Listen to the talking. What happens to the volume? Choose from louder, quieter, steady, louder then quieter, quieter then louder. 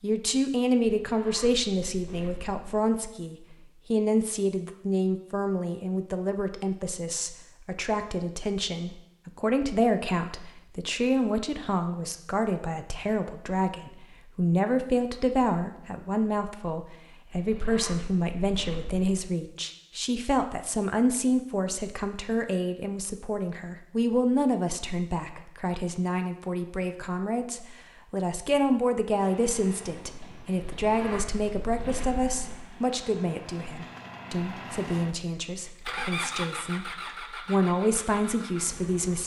steady.